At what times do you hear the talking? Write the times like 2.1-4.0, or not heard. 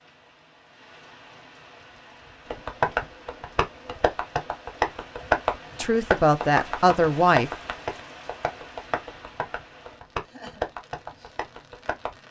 5.8-7.5.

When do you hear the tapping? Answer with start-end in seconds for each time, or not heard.
2.5-12.2.